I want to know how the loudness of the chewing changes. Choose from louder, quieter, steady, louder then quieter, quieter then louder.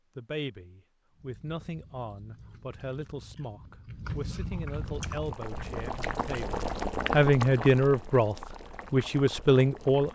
louder.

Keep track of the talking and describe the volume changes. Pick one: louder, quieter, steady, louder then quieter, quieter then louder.
louder.